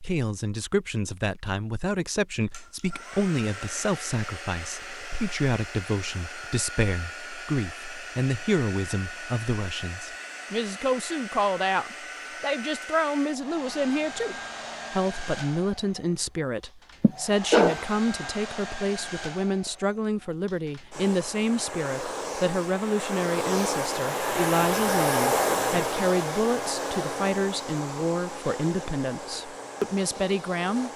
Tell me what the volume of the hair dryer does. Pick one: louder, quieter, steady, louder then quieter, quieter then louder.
louder.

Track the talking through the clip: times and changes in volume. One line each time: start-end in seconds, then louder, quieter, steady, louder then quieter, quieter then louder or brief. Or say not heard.
0.0-30.9 steady.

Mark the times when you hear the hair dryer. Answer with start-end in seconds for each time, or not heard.
2.5-30.9.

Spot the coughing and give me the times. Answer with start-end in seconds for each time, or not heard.
17.0-18.3.